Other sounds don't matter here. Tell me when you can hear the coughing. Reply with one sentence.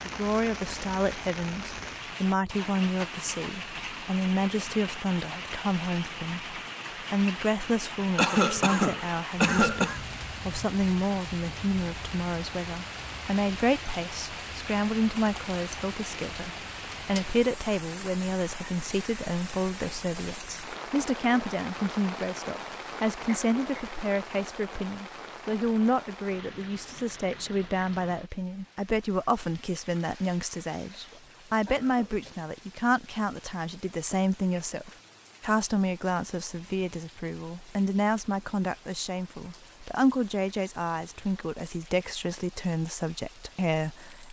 The coughing can be heard from 8.2 to 10.0 s, from 23.2 to 24.0 s and from 30.8 to 32.5 s.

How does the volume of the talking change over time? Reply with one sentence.
The loudness of the talking stays about the same.